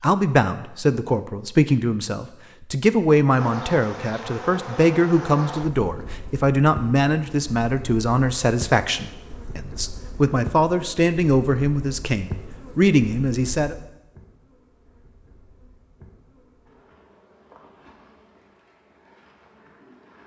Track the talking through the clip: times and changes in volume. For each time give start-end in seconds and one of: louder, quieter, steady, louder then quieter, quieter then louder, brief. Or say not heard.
0.0-13.8 steady.